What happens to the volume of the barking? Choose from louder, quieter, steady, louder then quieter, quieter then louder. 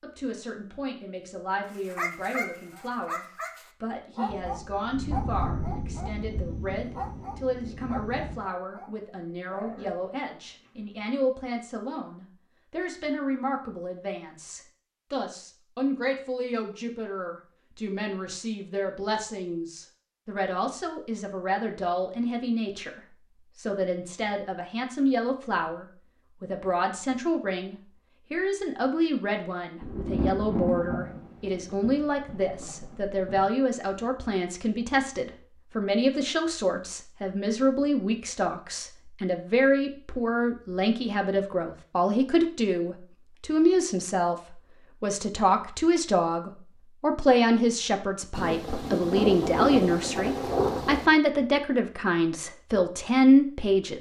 quieter.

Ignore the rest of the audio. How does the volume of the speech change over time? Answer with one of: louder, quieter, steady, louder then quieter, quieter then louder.
louder.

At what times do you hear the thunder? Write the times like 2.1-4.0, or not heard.
4.2-8.4, 29.8-33.5, 48.4-51.1.